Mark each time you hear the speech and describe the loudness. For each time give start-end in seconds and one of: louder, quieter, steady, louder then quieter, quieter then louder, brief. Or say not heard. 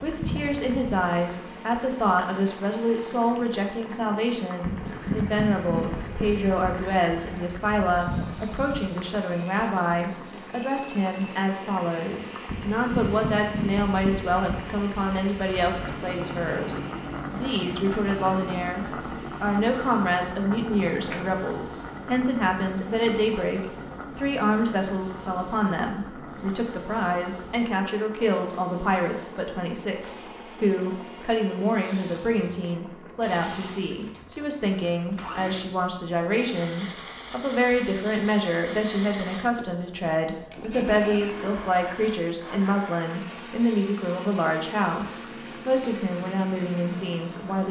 0.0-47.6 steady.